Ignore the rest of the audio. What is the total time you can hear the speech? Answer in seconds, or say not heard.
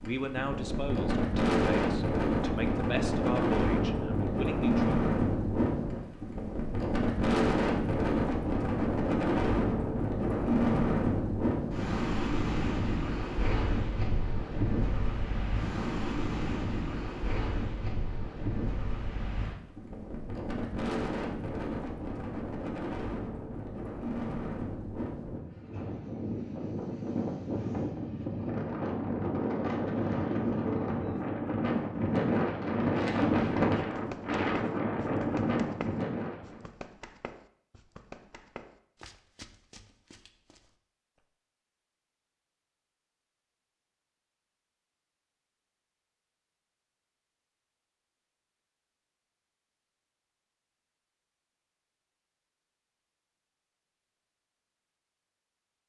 5 s.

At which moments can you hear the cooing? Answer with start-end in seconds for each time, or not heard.
not heard.